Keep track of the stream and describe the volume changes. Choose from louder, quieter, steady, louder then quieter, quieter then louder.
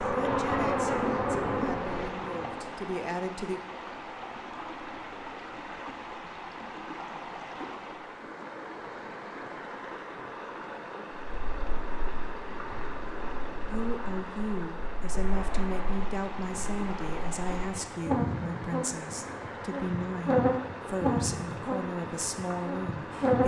steady.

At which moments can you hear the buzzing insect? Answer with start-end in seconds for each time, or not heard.
0.0-2.7, 11.3-23.4.